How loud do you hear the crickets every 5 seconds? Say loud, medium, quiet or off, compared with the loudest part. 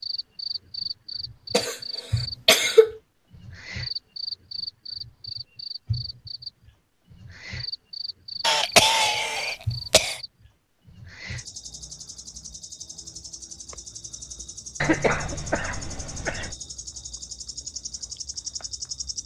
loud, loud, medium, loud.